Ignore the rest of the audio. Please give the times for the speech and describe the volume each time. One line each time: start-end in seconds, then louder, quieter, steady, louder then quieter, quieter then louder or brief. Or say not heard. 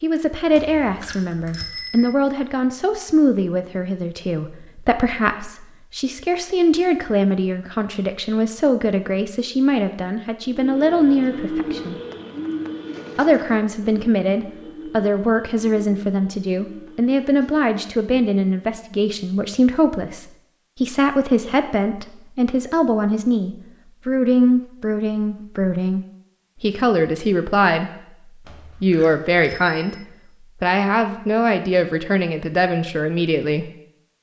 0.0-11.9 steady
13.2-26.0 steady
26.6-27.9 brief
28.8-33.7 steady.